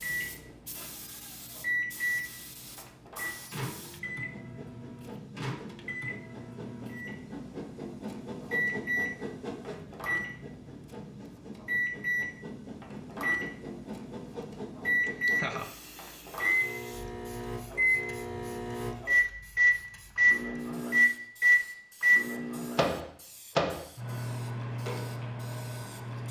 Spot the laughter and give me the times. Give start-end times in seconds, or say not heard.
15.1-15.7.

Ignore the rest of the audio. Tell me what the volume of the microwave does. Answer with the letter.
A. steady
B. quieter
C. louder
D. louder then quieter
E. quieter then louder
C.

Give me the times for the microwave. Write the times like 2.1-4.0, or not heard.
0.0-26.2.